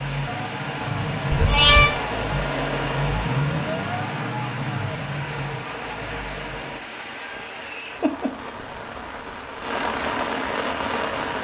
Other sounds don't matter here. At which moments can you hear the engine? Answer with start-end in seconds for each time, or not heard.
0.0-6.8.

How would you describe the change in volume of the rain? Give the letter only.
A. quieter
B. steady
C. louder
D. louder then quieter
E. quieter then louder
C.